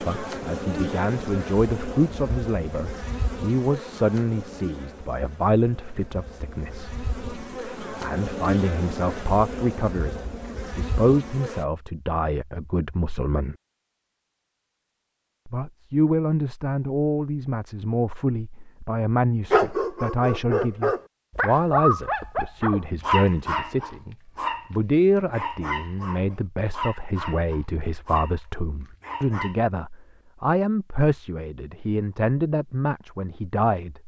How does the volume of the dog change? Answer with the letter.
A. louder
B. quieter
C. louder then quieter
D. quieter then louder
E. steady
B.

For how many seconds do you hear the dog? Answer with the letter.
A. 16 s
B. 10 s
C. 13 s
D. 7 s
B.